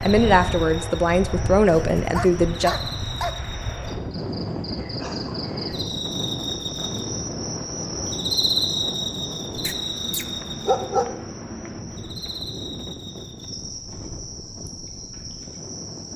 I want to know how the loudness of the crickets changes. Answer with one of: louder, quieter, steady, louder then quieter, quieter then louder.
louder then quieter.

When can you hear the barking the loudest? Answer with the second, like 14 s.
11 s.